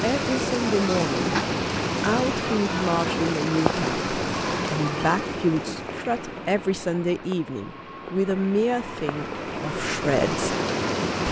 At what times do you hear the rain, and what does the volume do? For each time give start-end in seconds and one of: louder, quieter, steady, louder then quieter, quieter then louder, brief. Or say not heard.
0.0-11.2 quieter then louder.